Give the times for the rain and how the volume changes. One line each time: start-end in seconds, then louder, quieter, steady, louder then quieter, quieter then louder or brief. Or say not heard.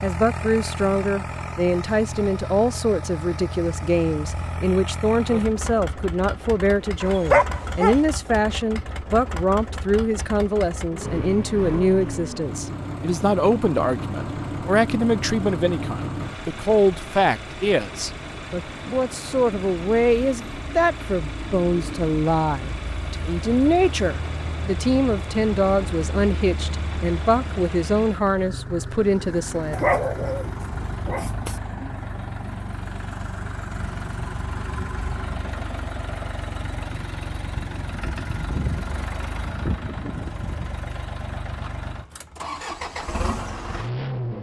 not heard.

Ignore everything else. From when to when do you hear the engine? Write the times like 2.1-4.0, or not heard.
0.0-44.3.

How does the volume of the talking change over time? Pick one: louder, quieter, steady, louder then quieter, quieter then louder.
steady.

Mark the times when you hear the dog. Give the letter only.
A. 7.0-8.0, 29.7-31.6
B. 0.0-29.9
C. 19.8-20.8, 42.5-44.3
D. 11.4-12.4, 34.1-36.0
A.